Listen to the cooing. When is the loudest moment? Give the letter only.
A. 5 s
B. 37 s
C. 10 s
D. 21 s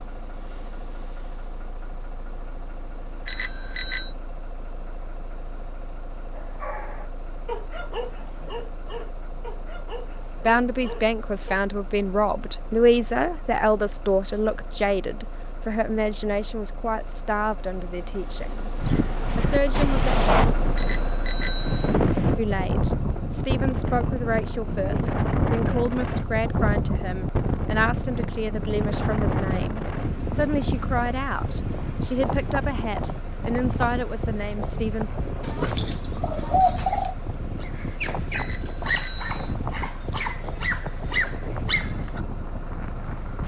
B.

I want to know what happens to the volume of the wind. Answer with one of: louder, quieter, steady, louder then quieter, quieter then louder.
quieter.